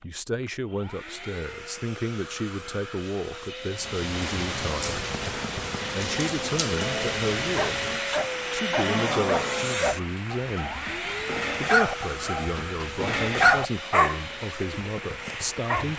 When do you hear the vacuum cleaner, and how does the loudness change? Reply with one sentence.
You can hear the vacuum cleaner from 0.0 to 15.7 s, getting louder then quieter.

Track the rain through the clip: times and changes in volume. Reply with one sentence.
The rain can be heard from 3.7 to 15.9 s, getting quieter.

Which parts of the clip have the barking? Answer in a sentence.
You can hear the barking from 7.5 to 15.8 s.